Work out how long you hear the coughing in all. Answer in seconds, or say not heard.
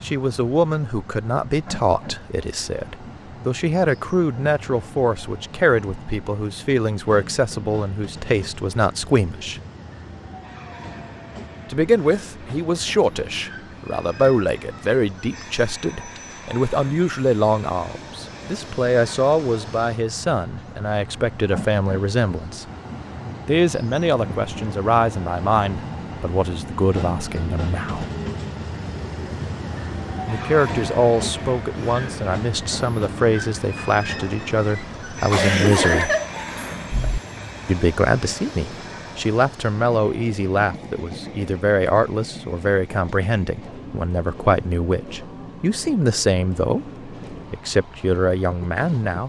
2 s.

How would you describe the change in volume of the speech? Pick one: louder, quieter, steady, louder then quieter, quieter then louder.
steady.